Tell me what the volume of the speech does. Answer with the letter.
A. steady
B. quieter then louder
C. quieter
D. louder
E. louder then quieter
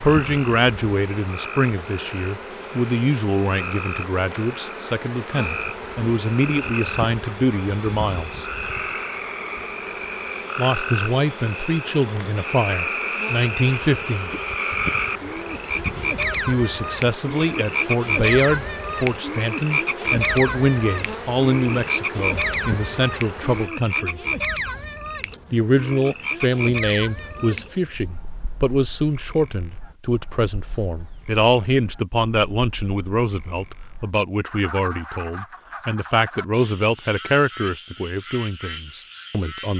A.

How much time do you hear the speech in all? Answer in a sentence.
You can hear the speech for 34 seconds altogether.